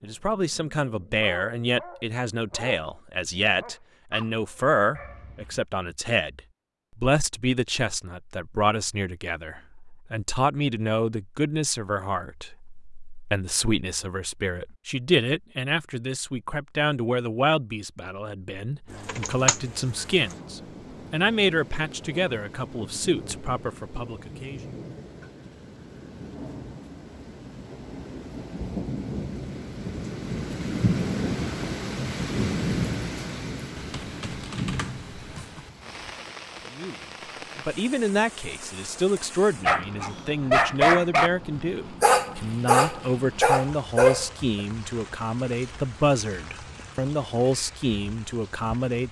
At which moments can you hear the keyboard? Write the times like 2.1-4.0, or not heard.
19.1-20.4, 33.8-35.7.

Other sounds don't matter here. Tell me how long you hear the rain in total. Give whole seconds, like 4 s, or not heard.
30 s.